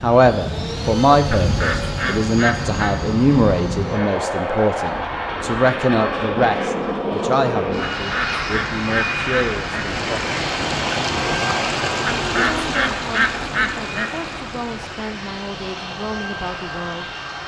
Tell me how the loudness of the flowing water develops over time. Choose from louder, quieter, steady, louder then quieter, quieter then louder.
louder then quieter.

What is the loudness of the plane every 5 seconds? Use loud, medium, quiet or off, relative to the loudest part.
loud, loud, medium, medium.